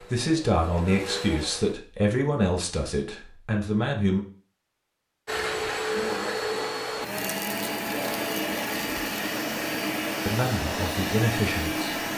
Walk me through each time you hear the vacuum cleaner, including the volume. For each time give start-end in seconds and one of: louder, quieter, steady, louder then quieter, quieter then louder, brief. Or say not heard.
0.0-1.8 brief
5.2-12.1 steady.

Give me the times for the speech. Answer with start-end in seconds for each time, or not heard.
0.0-4.2, 10.2-11.9.